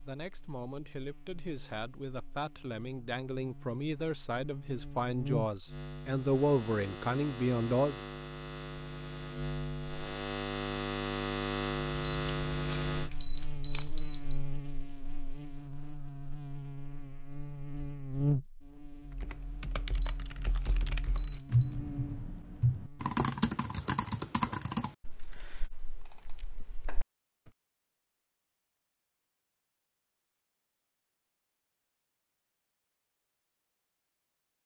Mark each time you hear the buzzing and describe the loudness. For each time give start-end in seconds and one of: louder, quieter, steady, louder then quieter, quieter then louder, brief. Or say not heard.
0.0-23.1 louder then quieter.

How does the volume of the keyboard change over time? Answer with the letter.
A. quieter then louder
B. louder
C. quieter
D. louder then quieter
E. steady
D.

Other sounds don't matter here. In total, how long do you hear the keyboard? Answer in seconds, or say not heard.
8 s.